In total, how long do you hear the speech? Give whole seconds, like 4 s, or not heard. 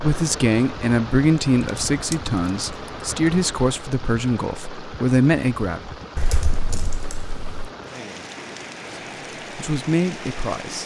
8 s.